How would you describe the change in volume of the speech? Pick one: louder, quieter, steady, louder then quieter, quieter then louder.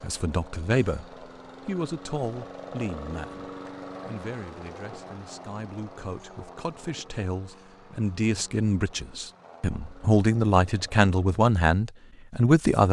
quieter then louder.